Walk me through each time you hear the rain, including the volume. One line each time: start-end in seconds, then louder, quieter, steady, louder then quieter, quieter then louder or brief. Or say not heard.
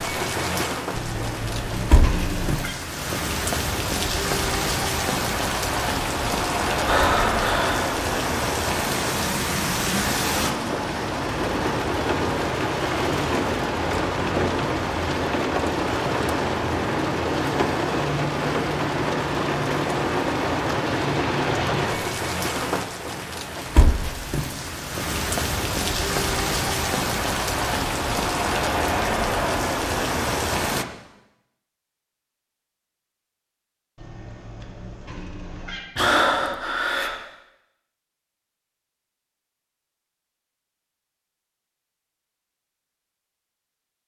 0.0-30.9 steady.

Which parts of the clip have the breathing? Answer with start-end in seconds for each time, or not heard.
6.8-7.8, 36.0-37.1.